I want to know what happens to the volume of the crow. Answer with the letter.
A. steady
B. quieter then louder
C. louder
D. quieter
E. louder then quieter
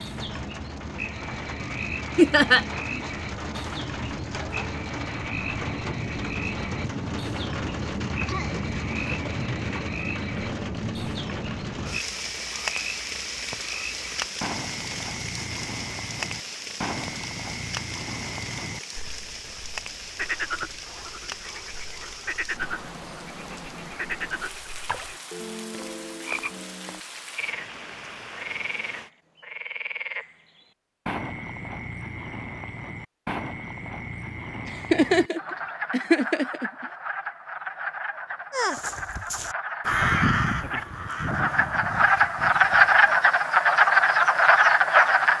E.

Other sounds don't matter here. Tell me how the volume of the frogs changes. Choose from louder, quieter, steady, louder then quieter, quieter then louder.
louder.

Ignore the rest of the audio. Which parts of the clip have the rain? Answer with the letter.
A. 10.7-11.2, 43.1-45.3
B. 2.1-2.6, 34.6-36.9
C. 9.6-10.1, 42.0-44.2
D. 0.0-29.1
D.